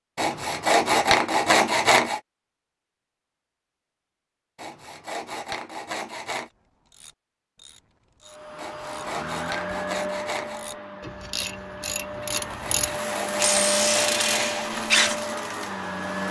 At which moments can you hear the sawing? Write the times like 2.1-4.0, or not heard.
0.1-2.2, 4.5-6.5, 8.6-10.6, 12.6-14.7.